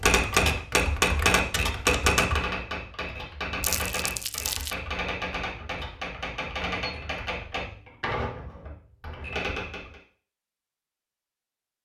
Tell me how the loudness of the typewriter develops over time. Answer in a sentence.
The loudness of the typewriter goes down.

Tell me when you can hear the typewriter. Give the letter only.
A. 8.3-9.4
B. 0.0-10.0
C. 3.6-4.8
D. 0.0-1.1
B.